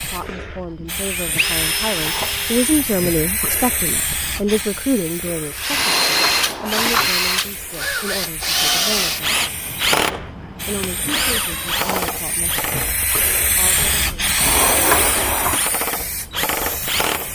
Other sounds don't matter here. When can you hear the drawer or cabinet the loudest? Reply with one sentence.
The volume of the drawer or cabinet peaks at 15 seconds.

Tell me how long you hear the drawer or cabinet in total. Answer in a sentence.
The drawer or cabinet can be heard for 3 seconds in total.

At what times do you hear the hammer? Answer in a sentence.
The hammer can't be heard in this clip.